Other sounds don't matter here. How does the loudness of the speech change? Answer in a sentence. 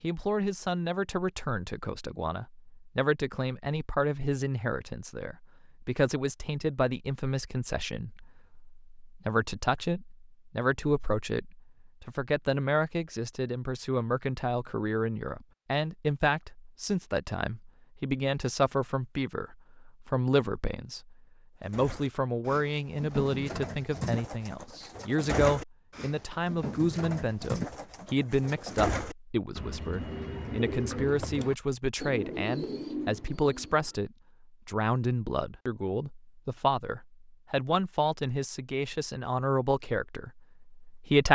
The volume of the speech stays about the same.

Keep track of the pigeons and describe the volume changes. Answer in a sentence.
The loudness of the pigeons stays about the same.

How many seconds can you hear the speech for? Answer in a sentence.
The speech can be heard for 41 seconds in total.